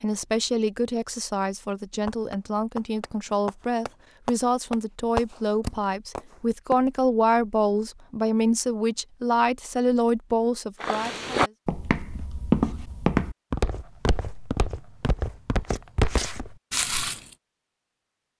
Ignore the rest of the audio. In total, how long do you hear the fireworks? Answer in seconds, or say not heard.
5 s.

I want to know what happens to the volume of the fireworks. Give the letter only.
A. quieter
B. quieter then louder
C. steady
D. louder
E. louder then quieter
E.